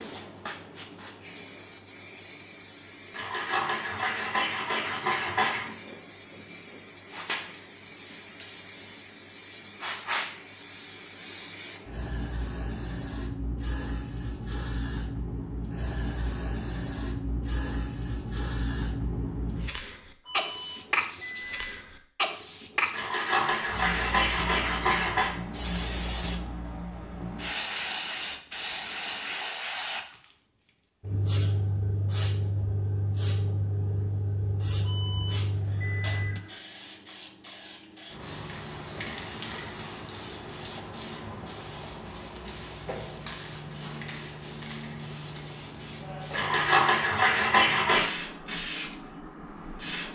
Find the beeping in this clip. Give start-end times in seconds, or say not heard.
20.2-22.1, 34.8-36.6.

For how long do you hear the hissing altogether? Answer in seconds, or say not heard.
50 s.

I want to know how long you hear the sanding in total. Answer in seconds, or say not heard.
7 s.